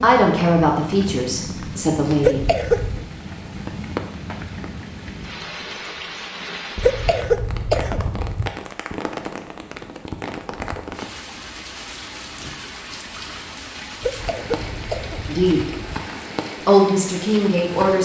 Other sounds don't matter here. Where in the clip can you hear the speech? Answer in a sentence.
You can hear the speech from 0.0 to 2.4 s, from 15.2 to 15.7 s and from 16.6 to 18.0 s.